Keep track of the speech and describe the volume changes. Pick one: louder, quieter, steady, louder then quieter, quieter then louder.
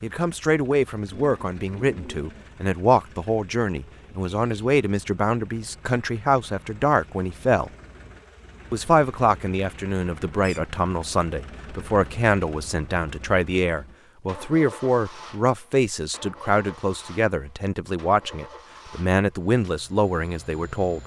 steady.